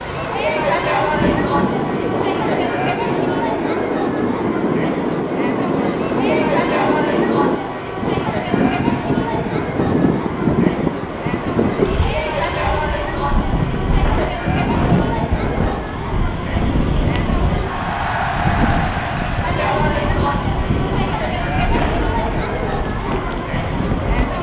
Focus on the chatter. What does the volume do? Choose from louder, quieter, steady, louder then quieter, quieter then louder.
steady.